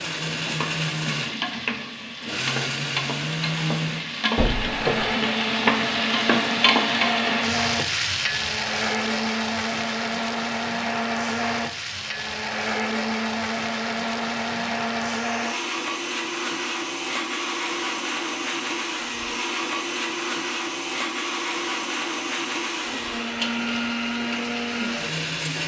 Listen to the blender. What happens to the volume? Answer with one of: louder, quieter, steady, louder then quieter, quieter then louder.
steady.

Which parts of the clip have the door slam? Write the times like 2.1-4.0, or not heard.
4.3-5.2.